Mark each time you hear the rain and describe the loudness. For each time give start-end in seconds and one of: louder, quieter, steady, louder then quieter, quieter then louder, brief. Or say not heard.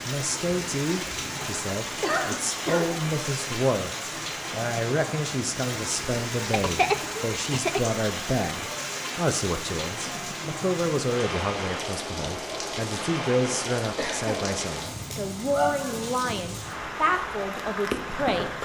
0.0-18.6 steady.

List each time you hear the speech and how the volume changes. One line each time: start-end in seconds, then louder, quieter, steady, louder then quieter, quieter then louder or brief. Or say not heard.
0.0-18.6 steady.